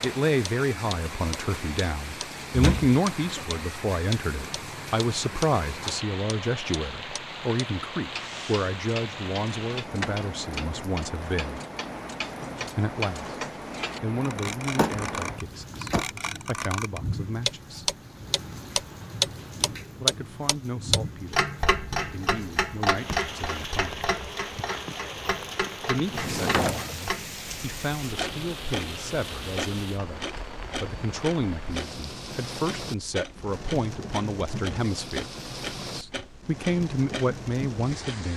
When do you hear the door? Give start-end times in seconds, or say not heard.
2.5-3.5, 14.8-16.1, 26.0-27.1.